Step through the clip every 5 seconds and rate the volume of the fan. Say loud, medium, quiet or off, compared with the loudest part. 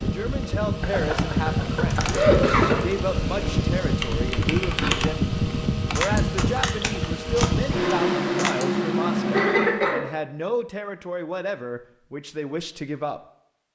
loud, loud, off.